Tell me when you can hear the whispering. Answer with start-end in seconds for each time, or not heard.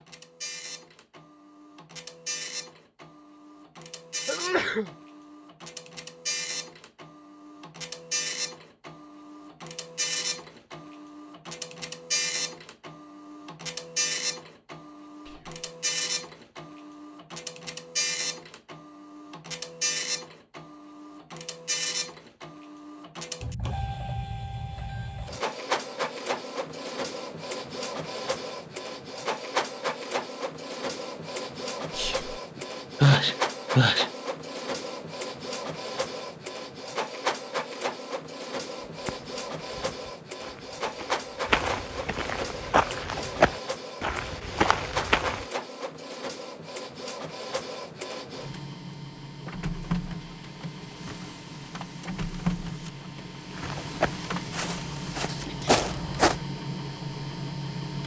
15.2-15.7, 31.9-32.4.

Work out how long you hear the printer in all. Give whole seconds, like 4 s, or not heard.
58 s.